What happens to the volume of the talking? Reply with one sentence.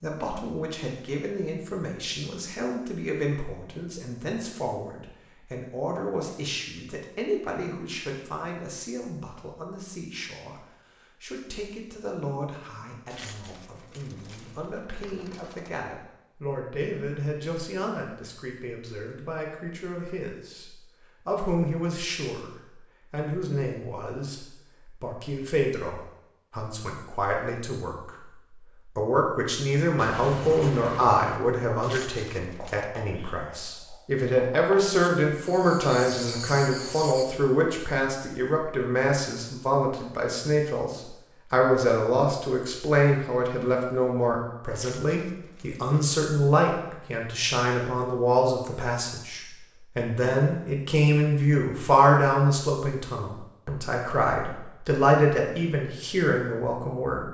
The volume of the talking goes up.